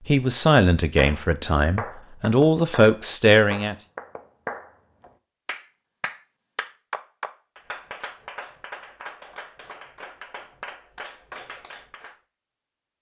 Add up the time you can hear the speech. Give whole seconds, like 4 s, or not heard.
4 s.